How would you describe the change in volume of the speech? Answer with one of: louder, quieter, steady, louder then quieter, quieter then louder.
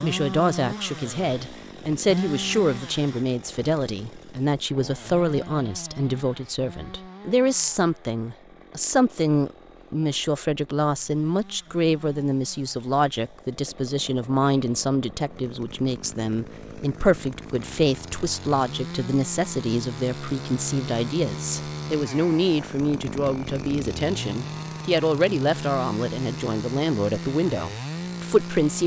steady.